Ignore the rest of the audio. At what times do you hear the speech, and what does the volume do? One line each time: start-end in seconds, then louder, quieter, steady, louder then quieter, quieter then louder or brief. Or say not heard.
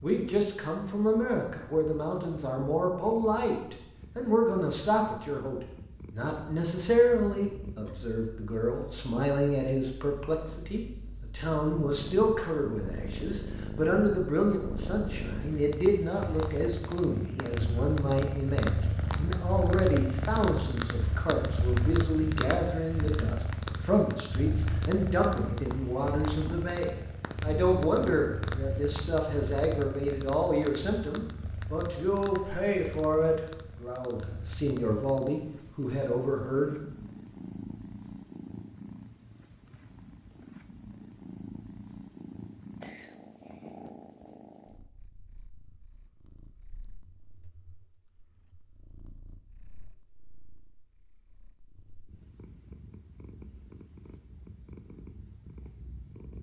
0.0-36.9 steady.